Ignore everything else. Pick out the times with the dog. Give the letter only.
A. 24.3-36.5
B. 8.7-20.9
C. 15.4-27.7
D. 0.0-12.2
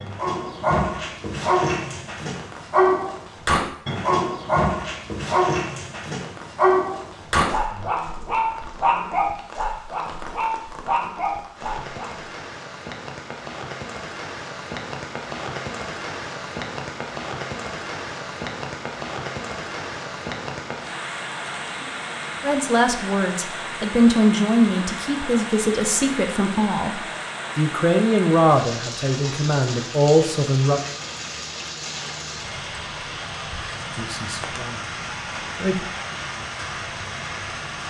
D.